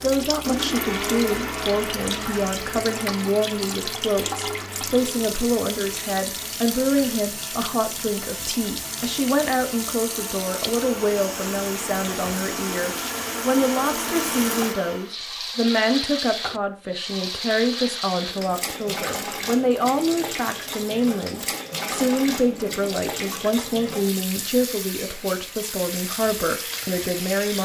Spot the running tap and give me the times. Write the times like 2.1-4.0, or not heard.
0.0-27.6.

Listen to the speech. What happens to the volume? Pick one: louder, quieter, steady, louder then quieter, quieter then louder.
steady.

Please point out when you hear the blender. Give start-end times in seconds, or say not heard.
0.2-15.2.